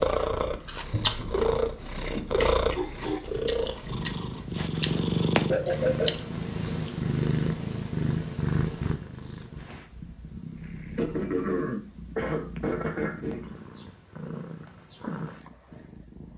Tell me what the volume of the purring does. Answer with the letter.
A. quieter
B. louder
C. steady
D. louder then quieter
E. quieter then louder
A.